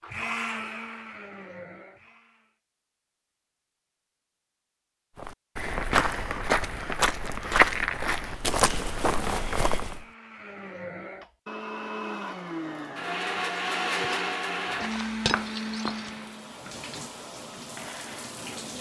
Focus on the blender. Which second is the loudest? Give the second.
14 s.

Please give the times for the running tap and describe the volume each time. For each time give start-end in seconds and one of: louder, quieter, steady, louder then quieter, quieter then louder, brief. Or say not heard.
14.7-18.7 louder.